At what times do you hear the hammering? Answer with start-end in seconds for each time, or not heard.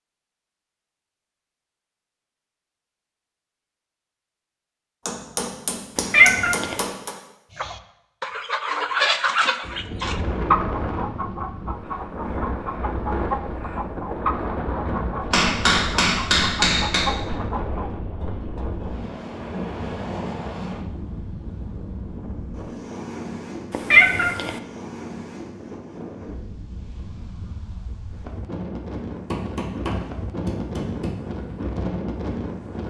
5.0-7.2, 15.3-17.1, 29.3-31.1.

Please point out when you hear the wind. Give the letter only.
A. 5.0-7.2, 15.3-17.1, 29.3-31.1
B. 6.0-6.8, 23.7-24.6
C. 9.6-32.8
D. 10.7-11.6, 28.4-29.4
C.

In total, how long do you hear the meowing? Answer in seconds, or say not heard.
2 s.